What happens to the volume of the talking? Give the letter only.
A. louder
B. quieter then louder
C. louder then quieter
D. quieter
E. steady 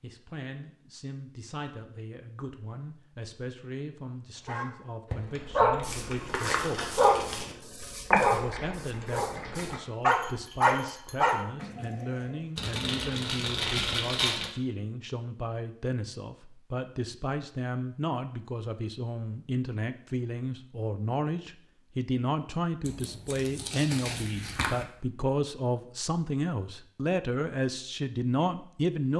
A.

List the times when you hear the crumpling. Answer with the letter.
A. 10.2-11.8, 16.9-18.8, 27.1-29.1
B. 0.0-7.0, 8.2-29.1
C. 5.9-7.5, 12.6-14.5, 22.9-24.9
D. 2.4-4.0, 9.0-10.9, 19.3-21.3
C.